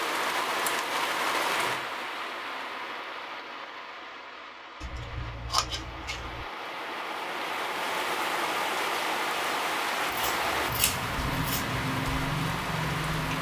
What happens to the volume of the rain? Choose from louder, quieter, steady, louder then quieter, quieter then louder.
quieter then louder.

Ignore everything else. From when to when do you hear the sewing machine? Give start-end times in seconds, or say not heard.
not heard.